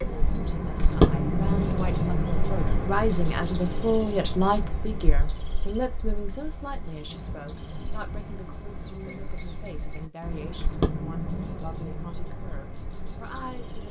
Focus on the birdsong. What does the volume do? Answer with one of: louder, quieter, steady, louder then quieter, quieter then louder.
quieter then louder.